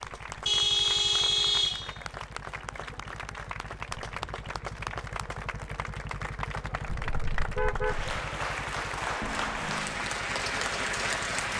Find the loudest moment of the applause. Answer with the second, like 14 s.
11 s.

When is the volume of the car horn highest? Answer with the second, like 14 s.
1 s.